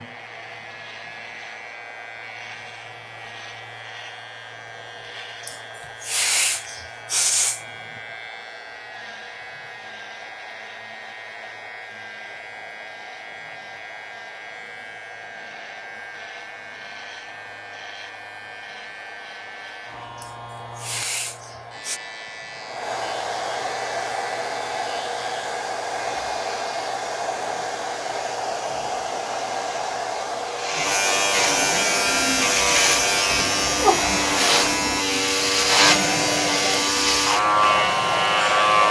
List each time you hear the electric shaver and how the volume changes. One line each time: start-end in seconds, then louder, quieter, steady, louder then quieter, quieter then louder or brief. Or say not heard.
0.0-38.8 louder.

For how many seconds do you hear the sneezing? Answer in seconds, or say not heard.
4 s.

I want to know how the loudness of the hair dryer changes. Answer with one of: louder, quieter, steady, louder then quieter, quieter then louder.
louder.